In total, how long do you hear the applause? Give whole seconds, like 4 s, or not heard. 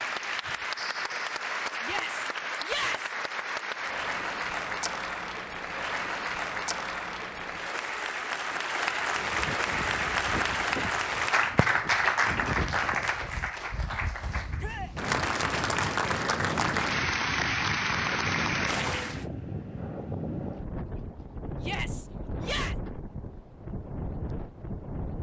19 s.